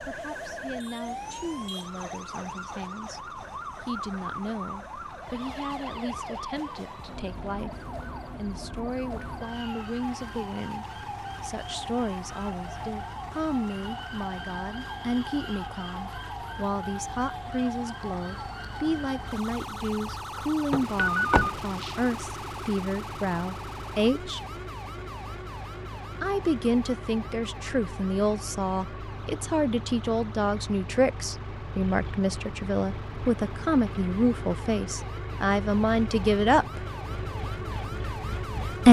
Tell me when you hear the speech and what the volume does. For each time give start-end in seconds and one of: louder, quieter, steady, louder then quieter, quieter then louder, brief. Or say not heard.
0.0-24.4 louder
26.2-36.8 steady.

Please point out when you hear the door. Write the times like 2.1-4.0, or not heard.
20.7-21.6.